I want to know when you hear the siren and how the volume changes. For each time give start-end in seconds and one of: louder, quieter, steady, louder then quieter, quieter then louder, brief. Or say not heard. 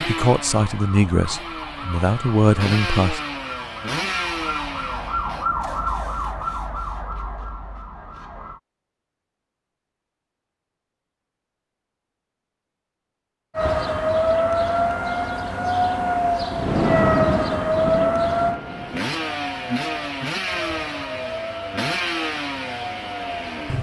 0.2-8.6 louder then quieter
13.6-23.7 quieter.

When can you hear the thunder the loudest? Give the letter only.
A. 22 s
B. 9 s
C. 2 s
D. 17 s
D.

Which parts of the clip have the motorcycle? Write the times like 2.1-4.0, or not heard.
0.0-5.5, 18.5-23.7.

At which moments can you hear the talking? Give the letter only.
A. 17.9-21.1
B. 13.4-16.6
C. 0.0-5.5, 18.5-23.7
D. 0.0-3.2
D.